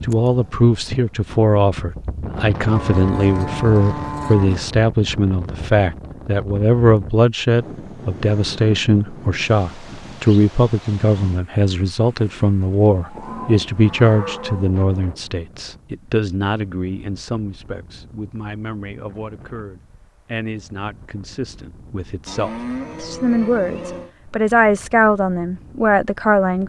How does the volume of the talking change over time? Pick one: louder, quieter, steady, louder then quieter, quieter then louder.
quieter then louder.